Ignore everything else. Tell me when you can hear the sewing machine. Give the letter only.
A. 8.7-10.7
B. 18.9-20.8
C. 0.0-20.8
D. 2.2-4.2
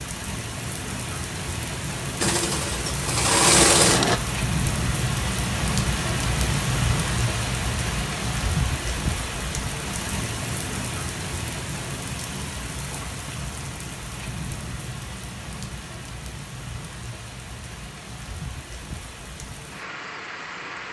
D.